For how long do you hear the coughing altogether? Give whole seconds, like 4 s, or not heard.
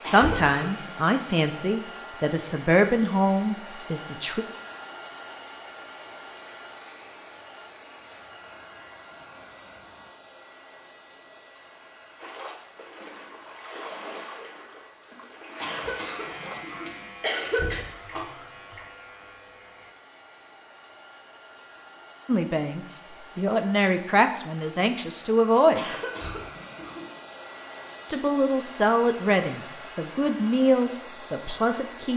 5 s.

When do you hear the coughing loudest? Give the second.
17 s.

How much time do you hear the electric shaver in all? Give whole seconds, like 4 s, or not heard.
6 s.